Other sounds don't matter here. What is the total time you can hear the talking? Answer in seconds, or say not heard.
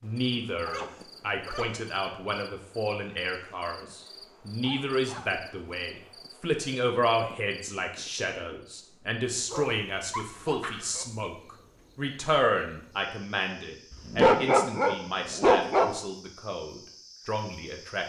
18 s.